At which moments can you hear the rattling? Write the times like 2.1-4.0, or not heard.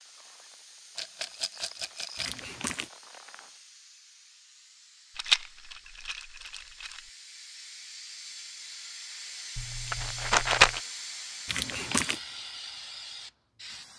0.9-2.4, 5.2-7.0, 9.6-10.8.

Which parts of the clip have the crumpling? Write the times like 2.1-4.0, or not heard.
2.1-2.9, 11.4-12.2.